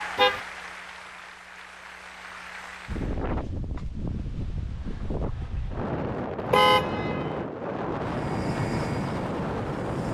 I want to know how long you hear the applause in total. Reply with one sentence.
The applause can be heard for 3 seconds in total.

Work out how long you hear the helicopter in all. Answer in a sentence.
You can hear the helicopter for 2 seconds altogether.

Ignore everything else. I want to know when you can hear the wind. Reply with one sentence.
You can hear the wind from 2.9 to 10.1 s.